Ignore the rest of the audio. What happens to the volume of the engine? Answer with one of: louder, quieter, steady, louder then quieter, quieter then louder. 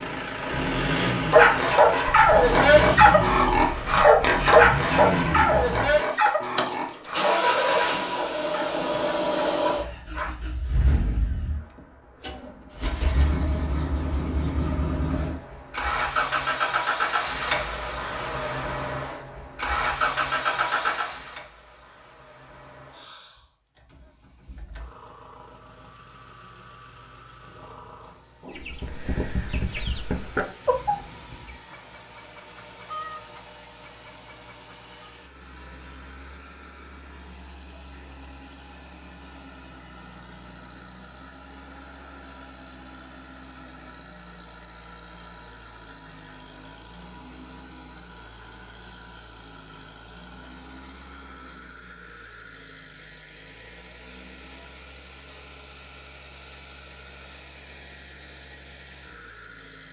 quieter.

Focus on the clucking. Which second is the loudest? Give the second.
31 s.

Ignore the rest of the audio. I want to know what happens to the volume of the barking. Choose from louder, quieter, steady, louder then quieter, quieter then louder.
quieter.